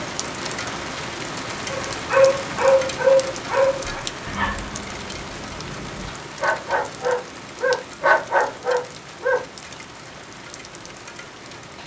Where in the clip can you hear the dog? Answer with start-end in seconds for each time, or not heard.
1.7-9.4.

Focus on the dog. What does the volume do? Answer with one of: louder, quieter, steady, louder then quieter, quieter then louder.
quieter then louder.